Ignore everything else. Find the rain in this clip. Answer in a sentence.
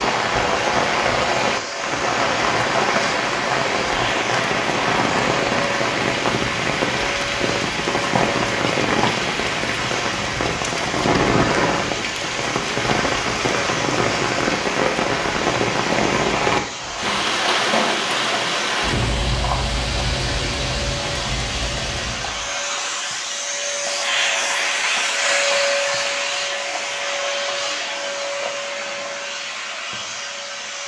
The rain can be heard from 0.0 to 22.6 s.